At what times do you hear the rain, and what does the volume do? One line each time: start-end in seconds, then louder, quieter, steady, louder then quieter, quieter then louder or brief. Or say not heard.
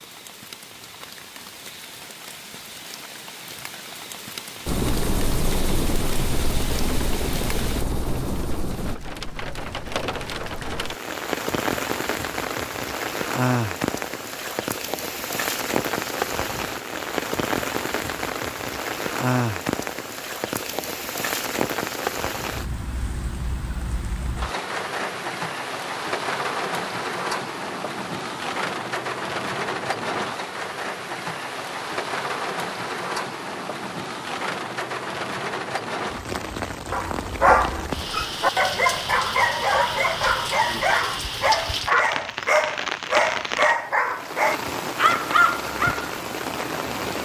0.0-47.1 louder.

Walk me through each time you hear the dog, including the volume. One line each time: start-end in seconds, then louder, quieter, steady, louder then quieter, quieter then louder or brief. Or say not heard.
36.9-46.1 steady.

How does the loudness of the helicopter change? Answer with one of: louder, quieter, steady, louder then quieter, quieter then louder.
steady.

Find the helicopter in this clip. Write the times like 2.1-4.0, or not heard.
4.7-8.9.